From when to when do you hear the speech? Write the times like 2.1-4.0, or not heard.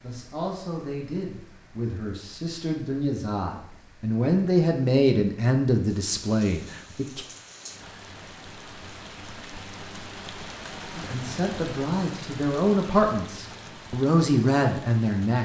0.0-7.2, 10.9-15.3.